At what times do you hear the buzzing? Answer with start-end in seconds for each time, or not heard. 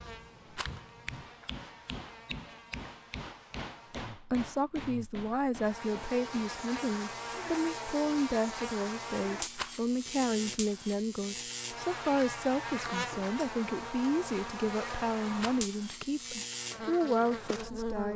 0.0-18.1.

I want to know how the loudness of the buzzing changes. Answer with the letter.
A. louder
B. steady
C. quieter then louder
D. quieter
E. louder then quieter
A.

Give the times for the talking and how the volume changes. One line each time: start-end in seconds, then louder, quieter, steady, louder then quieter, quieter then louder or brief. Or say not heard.
4.3-18.1 steady.